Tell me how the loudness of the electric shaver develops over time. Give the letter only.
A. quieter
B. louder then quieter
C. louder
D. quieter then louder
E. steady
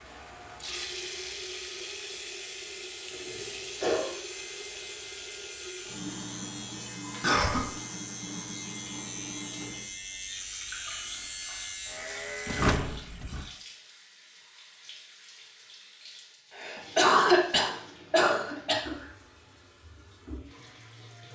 C.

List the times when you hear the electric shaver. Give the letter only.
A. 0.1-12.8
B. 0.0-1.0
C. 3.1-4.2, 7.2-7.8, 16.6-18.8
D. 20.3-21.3
A.